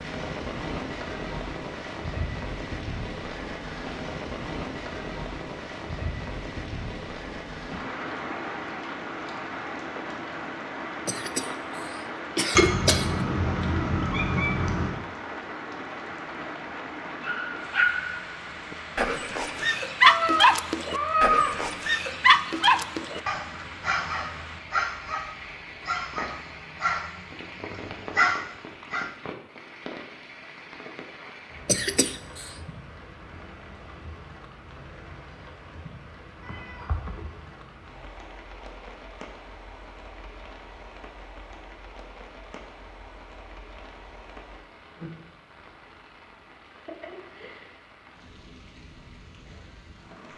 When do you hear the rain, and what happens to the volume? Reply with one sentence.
You can hear the rain from 0.0 to 50.3 s, getting quieter.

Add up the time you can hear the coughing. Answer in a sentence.
You can hear the coughing for 3 seconds altogether.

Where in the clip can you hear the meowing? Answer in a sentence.
You can hear the meowing from 12.6 to 14.9 s, from 20.0 to 21.6 s and from 36.5 to 37.2 s.